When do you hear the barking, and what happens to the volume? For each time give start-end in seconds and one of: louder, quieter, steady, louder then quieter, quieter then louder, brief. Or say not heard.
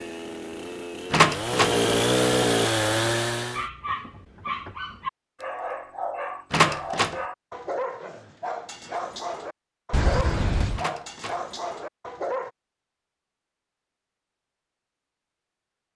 3.5-12.5 steady.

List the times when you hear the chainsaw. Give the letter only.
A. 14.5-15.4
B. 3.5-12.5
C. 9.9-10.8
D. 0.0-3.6
D.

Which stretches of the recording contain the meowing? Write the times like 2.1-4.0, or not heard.
9.9-10.8.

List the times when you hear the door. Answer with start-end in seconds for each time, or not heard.
1.1-1.8, 6.5-7.2, 10.8-11.4.